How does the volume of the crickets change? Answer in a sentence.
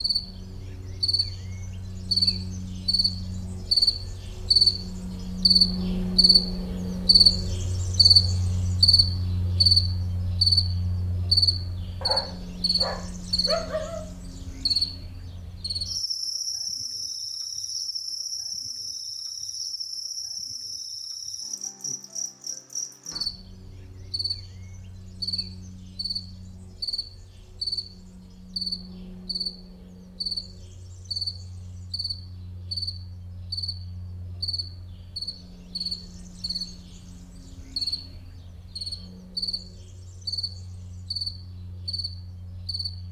The volume of the crickets goes down.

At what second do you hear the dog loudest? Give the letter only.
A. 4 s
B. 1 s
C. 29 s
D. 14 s
D.